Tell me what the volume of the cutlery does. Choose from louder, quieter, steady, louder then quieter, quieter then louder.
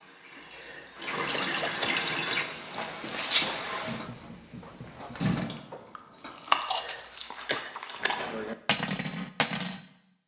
louder.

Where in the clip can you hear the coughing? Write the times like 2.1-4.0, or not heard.
0.3-2.0, 6.5-7.8.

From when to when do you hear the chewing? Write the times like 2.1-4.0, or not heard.
6.0-8.2.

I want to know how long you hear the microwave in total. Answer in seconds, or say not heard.
not heard.